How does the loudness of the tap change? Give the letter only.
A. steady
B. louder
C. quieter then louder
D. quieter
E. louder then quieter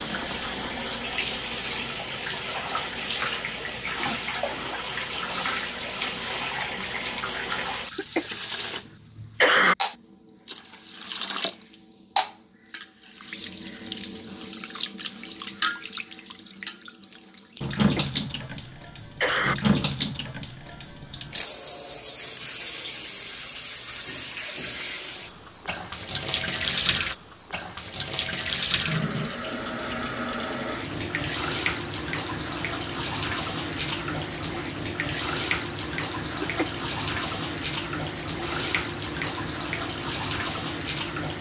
A.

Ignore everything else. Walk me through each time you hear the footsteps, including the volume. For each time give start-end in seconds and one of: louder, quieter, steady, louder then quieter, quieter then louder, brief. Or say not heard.
not heard.